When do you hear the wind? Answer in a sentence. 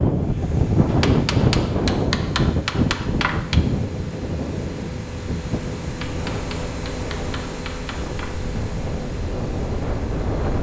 The wind can be heard from 0.0 to 10.5 s.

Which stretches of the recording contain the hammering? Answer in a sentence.
You can hear the hammering from 0.8 to 3.6 s and from 5.8 to 8.3 s.